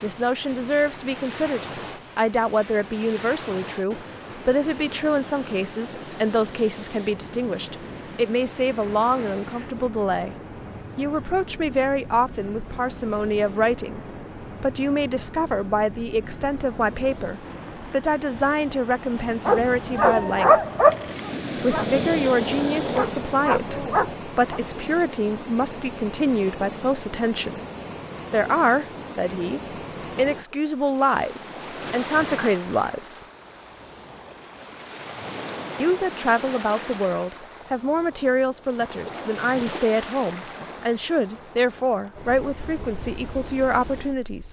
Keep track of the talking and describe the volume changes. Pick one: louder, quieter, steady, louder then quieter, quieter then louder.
steady.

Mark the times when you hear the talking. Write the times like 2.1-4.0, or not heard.
0.0-10.3, 10.9-20.6, 21.6-27.6, 28.3-33.2, 35.8-44.4.